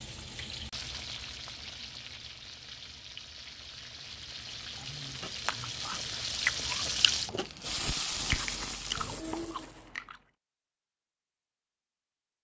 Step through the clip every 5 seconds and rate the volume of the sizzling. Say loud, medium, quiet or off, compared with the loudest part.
medium, loud, off.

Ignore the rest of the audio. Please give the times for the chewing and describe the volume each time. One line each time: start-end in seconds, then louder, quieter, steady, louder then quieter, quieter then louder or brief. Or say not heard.
4.0-10.2 louder then quieter.